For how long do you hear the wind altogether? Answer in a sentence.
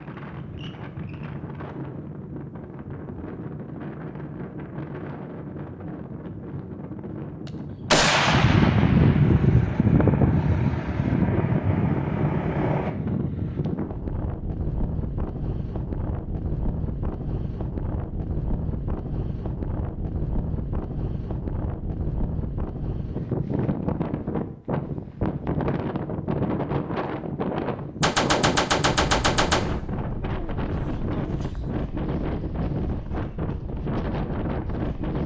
You can hear the wind for 35 seconds altogether.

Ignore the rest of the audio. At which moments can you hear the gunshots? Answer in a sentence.
You can hear the gunshots from 7.5 to 9.4 s and from 28.0 to 29.7 s.